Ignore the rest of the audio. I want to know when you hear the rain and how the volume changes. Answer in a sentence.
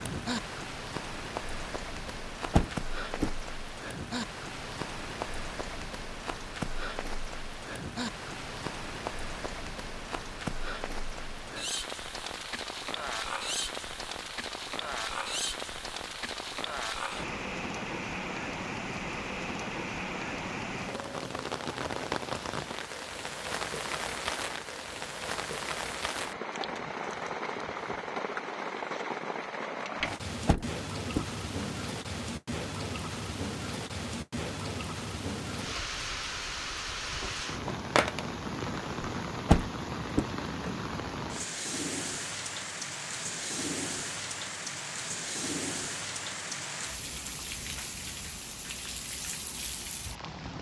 You can hear the rain from 0.0 to 50.5 s, at a steady volume.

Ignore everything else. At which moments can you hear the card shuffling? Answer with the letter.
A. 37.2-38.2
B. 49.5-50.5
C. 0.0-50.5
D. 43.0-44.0
A.